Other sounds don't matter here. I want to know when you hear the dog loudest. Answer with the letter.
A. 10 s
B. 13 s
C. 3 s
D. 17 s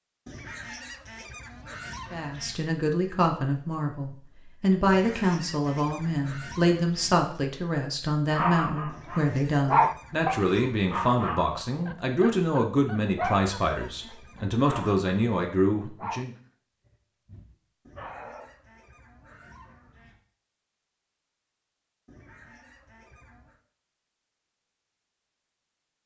A.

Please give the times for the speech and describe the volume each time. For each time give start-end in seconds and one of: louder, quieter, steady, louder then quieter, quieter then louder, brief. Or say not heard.
2.1-16.4 steady.